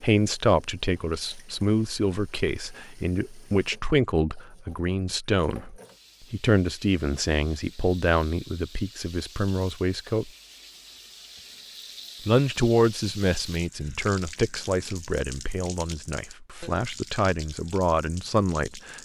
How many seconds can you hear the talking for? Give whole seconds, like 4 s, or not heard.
17 s.